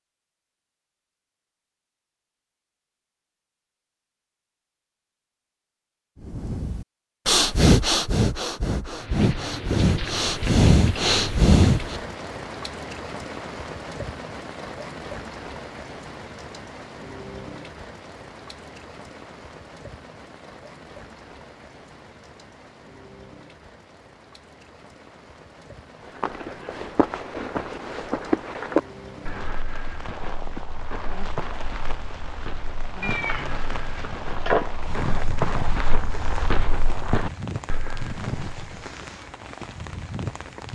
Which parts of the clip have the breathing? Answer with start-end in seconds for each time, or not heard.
6.2-12.0.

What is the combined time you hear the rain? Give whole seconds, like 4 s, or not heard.
32 s.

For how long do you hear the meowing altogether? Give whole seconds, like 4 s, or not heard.
2 s.